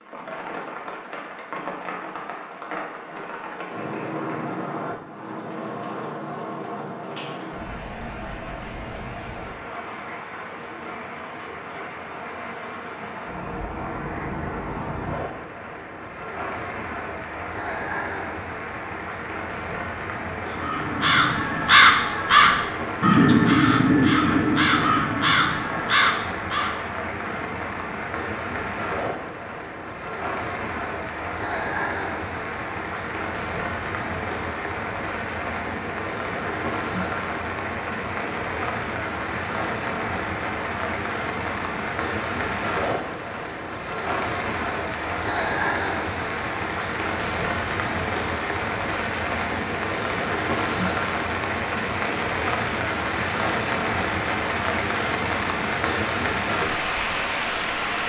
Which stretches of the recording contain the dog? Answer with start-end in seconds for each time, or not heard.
not heard.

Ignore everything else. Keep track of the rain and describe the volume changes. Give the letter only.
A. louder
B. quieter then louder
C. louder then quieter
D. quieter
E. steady
A.